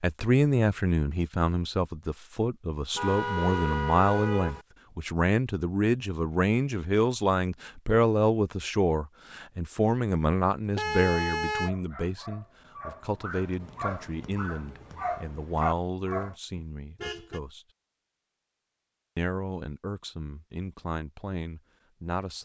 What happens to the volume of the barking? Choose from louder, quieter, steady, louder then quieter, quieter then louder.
louder.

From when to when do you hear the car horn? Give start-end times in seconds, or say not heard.
3.0-4.7, 10.8-11.7, 16.6-17.4.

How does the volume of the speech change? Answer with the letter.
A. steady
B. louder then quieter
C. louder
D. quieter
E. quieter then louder
D.